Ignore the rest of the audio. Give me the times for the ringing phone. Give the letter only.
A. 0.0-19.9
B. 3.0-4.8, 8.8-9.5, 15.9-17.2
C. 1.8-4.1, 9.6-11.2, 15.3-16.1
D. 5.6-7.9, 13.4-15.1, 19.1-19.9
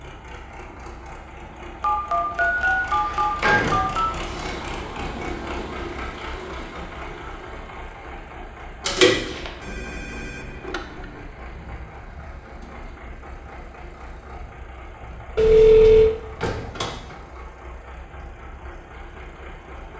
C.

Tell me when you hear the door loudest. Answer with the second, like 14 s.
9 s.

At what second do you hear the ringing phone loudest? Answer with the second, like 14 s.
16 s.